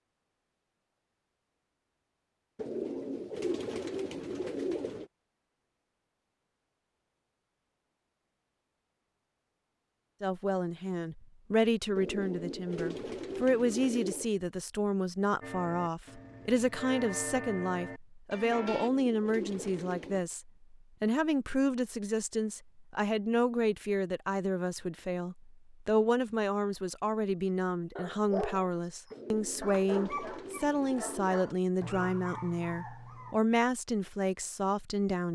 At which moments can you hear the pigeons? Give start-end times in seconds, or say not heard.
2.5-5.1, 11.9-14.3, 18.5-20.2, 29.1-31.4.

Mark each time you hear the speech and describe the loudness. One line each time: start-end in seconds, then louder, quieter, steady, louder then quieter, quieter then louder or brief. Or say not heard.
10.2-35.2 steady.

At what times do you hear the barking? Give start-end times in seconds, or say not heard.
27.9-28.7, 29.6-33.4.